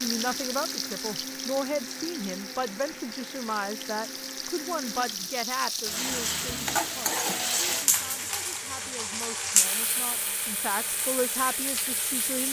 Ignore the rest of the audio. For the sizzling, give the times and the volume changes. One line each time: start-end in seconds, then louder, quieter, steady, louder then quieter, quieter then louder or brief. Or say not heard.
0.0-12.4 louder then quieter.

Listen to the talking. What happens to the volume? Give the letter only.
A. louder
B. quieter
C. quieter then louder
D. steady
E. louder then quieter
C.